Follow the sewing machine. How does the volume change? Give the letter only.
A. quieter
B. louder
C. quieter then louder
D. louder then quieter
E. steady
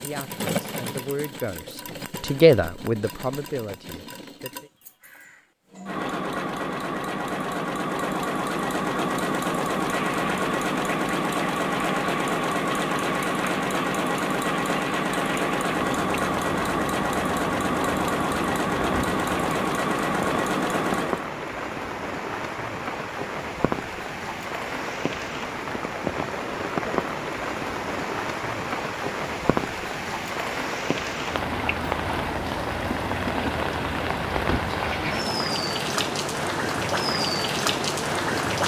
B.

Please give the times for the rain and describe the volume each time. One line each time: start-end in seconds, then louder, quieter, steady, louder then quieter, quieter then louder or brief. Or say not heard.
9.8-38.6 louder.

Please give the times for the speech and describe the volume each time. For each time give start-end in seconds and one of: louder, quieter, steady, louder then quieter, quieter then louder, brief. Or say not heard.
0.0-4.7 louder then quieter.